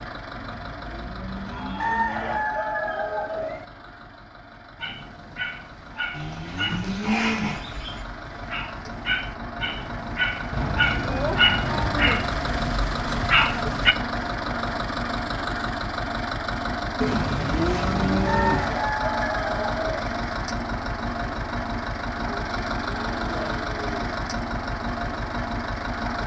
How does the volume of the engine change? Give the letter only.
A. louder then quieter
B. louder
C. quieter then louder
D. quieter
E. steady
B.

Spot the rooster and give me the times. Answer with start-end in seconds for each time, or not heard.
1.8-3.6, 18.2-20.1.